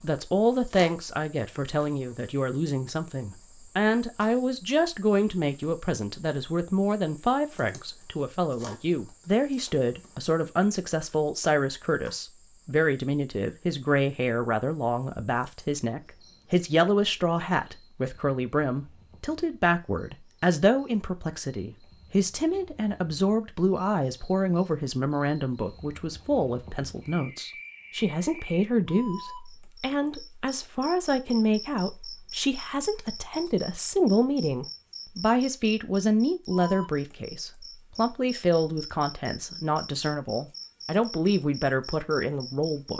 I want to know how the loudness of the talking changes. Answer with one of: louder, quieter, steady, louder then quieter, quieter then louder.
steady.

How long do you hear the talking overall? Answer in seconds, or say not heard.
43 s.